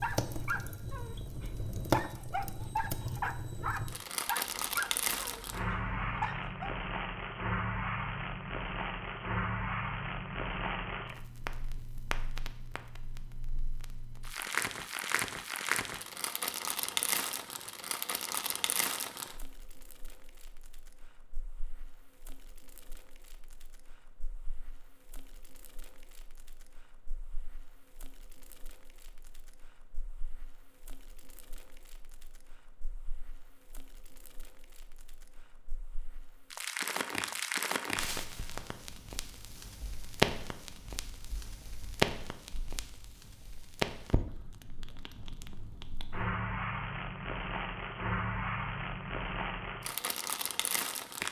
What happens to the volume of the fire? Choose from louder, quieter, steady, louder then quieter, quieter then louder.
quieter then louder.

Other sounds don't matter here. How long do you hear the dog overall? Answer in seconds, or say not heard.
7 s.